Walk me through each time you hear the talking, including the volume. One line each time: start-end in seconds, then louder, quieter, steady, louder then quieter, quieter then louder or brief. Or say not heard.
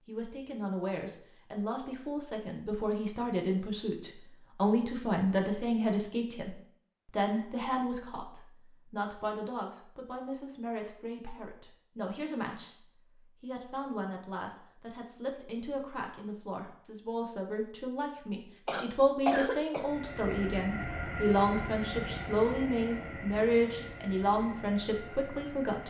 0.1-25.8 quieter then louder.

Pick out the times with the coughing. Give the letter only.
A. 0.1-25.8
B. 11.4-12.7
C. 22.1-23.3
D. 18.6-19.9
D.